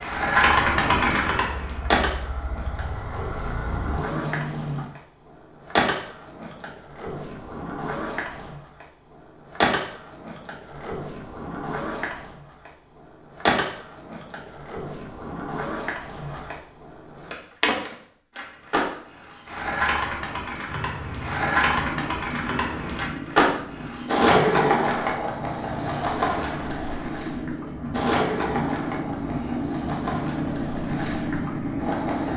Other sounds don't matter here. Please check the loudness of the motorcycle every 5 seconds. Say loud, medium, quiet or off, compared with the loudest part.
medium, off, off, off, medium, loud, loud.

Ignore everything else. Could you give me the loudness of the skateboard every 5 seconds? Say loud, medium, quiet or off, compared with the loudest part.
loud, medium, medium, medium, loud, medium, medium.